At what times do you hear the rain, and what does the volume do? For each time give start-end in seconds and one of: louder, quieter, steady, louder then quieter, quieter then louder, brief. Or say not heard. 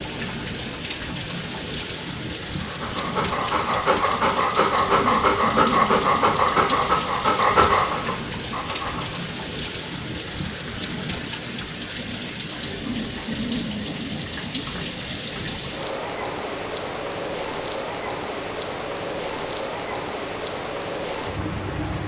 0.0-22.0 steady.